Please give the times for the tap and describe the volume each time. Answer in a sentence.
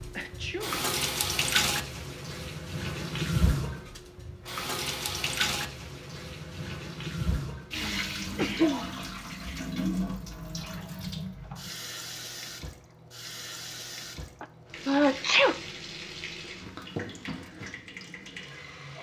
You can hear the tap from 0.0 to 18.9 s, getting quieter.